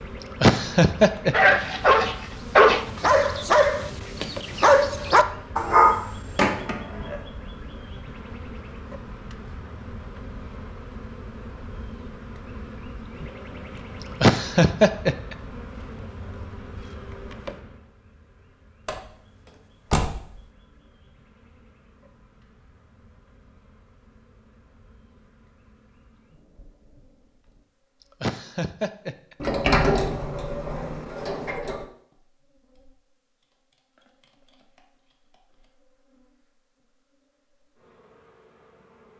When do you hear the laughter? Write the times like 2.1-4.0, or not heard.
0.4-1.6, 14.2-15.3, 28.2-29.4.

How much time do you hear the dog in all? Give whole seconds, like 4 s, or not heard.
5 s.